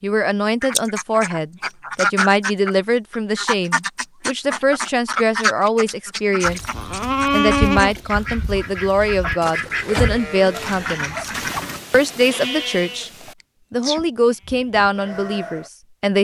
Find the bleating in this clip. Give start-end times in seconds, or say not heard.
6.5-15.7.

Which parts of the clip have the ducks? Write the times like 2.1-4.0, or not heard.
0.6-11.8.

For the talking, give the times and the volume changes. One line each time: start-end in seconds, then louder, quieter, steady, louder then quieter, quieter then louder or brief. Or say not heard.
0.0-6.6 steady
7.3-11.3 steady
11.9-13.1 brief
13.7-16.2 brief.